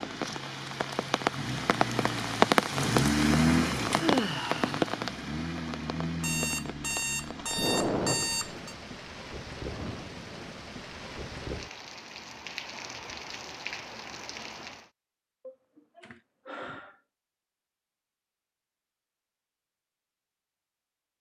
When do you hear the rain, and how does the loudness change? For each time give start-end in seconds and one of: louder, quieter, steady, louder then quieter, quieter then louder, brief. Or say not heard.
0.0-14.9 quieter.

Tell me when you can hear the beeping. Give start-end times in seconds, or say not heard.
6.2-8.8.